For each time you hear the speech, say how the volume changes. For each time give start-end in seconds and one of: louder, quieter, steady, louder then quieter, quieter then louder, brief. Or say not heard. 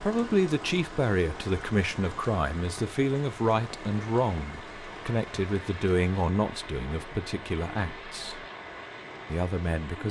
0.0-8.4 quieter
9.2-10.0 brief.